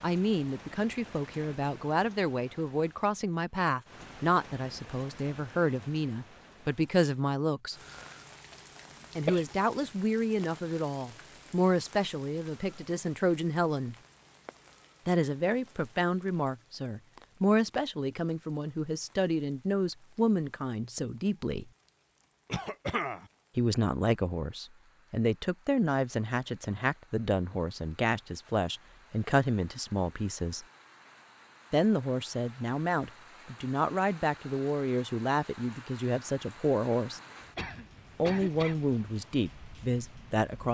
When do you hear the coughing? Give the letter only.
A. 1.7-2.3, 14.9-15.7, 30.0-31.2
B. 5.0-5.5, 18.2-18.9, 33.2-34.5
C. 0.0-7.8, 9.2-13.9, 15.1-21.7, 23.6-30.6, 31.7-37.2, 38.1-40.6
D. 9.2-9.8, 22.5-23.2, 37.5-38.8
D.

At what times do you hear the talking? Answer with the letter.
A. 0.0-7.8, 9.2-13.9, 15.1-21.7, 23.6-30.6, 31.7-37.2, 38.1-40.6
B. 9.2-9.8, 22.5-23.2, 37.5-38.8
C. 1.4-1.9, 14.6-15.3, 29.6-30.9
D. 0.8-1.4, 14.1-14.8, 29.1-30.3
A.